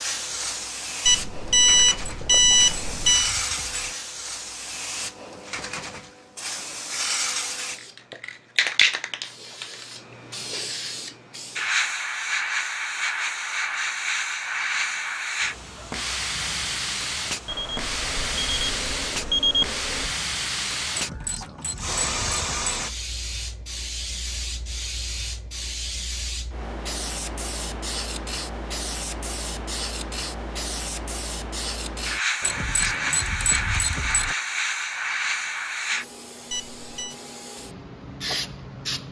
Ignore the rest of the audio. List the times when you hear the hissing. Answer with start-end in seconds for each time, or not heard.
0.0-39.0.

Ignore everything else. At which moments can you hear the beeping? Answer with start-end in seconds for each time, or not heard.
1.1-3.3, 17.4-20.1, 36.5-37.1.